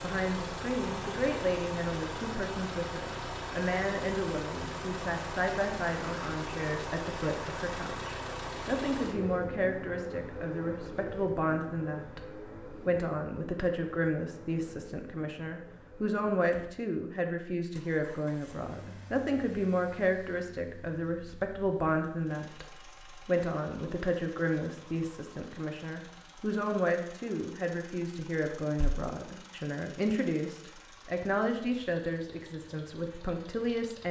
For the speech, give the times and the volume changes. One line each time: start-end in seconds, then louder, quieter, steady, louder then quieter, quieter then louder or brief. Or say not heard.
0.0-34.0 steady.